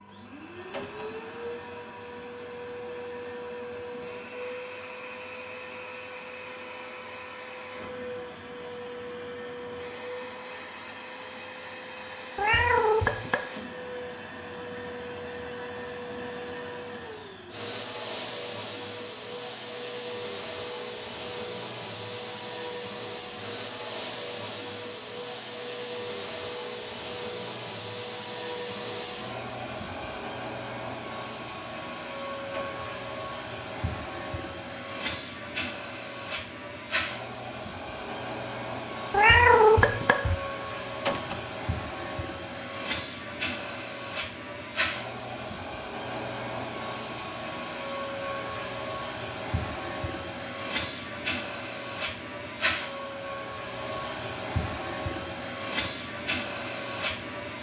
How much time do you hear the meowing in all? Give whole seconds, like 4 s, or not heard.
2 s.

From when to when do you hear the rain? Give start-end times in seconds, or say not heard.
not heard.